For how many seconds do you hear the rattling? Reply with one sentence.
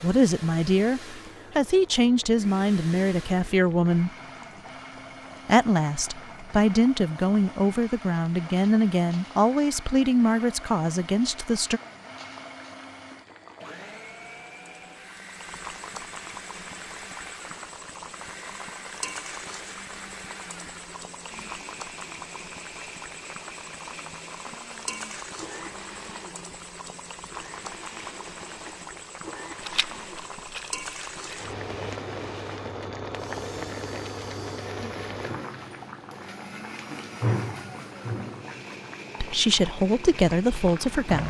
The rattling can be heard for 2 seconds in total.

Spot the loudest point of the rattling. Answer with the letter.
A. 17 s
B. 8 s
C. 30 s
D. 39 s
C.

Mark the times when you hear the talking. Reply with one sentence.
You can hear the talking from 0.0 to 4.1 s, from 5.5 to 11.8 s and from 39.2 to 41.2 s.